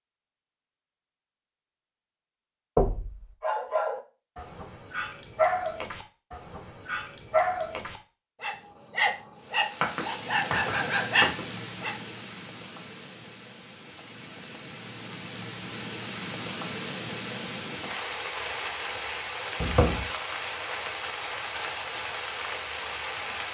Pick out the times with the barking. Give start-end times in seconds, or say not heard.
3.4-11.9.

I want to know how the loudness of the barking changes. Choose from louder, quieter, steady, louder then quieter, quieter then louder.
louder.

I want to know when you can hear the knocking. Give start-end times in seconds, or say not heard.
2.8-3.3, 9.8-11.4, 19.6-20.1.